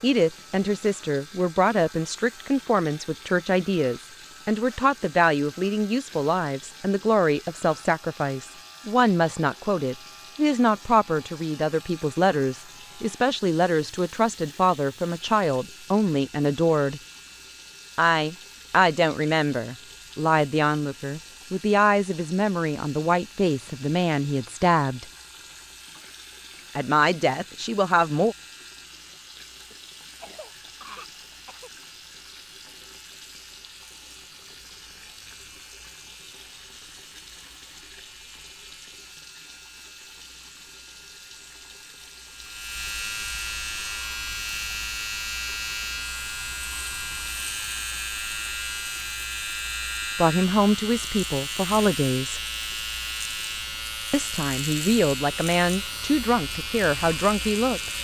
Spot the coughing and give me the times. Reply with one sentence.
The coughing can be heard from 29.7 to 31.7 s.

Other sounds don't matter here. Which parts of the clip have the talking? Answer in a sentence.
You can hear the talking from 0.0 to 17.0 s, from 17.9 to 25.1 s, from 26.8 to 28.4 s, from 50.1 to 52.4 s and from 54.1 to 57.9 s.